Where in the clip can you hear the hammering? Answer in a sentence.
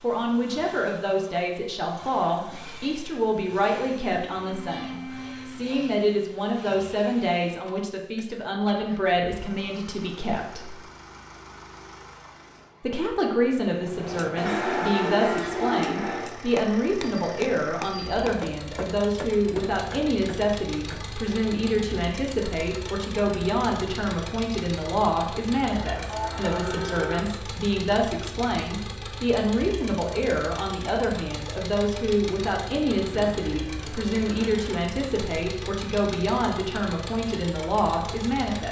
You can hear the hammering from 13.9 to 21.2 s.